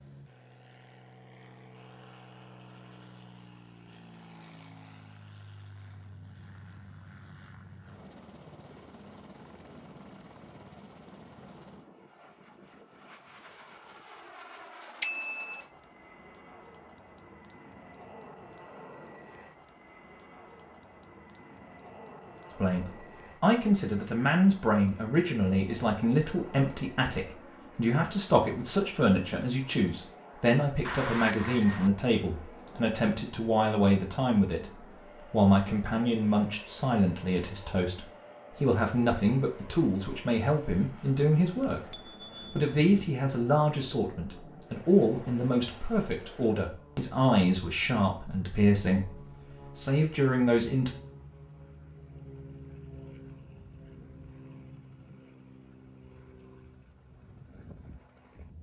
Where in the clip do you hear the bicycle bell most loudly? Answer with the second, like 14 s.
15 s.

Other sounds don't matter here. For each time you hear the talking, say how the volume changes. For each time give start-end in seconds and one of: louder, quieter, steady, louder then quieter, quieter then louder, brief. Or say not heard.
22.6-51.0 steady.